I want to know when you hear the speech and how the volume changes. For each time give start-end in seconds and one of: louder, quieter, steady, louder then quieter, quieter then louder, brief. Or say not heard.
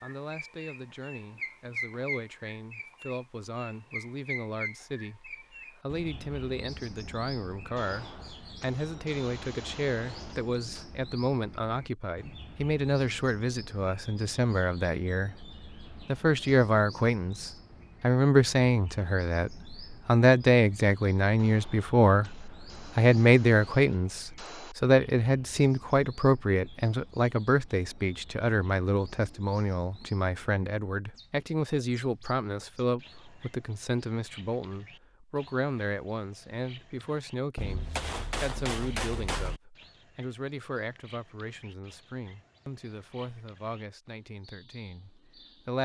0.0-45.7 louder then quieter.